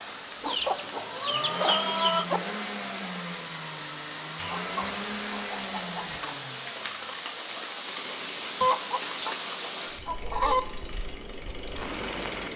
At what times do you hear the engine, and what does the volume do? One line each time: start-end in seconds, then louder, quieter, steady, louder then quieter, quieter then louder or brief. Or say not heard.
0.0-12.5 quieter.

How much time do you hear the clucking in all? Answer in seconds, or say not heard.
6 s.